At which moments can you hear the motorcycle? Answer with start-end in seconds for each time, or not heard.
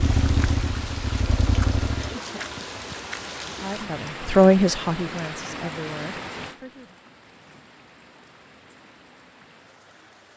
0.0-2.1.